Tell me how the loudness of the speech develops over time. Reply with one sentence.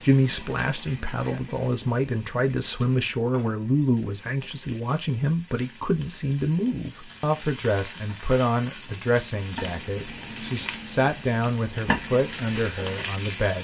The loudness of the speech stays about the same.